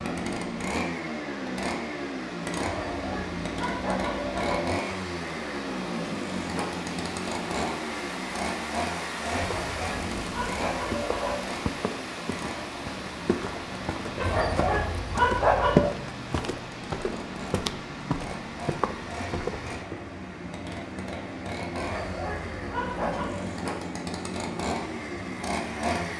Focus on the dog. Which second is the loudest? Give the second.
15 s.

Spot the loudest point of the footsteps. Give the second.
16 s.